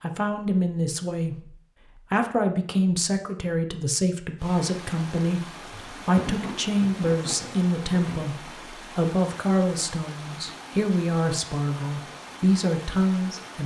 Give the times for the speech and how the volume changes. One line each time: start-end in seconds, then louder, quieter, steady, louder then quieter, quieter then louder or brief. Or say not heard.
0.0-13.6 steady.